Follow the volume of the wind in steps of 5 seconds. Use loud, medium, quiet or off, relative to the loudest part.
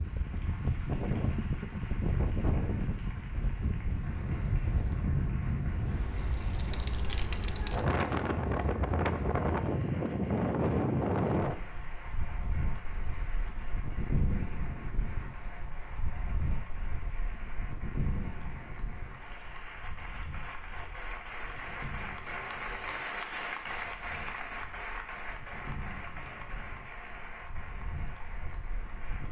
loud, loud, loud, medium, quiet, quiet.